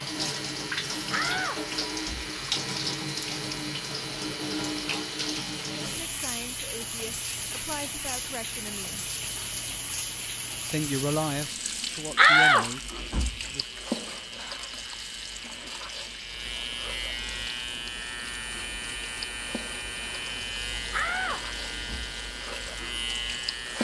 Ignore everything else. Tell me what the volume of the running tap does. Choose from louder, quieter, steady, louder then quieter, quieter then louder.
quieter.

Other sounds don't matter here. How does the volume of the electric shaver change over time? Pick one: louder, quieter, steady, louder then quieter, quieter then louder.
louder.